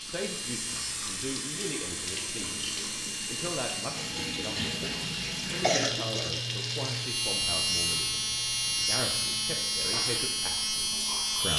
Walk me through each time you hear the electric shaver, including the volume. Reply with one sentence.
The electric shaver can be heard from 0.0 to 11.5 s, getting louder.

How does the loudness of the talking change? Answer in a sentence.
The loudness of the talking stays about the same.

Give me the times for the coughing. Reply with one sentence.
You can hear the coughing from 5.5 to 6.4 s.